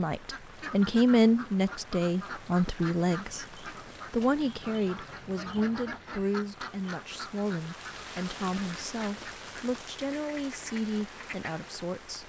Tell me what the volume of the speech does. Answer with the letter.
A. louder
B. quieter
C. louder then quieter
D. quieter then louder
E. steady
B.